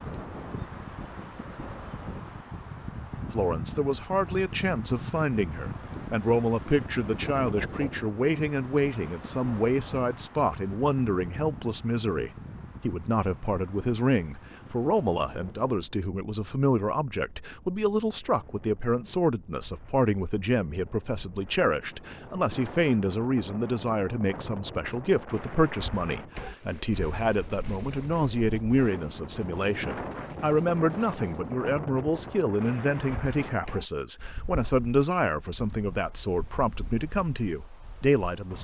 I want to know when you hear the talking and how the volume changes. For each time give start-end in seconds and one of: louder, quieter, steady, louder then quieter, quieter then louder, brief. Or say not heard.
3.3-38.5 steady.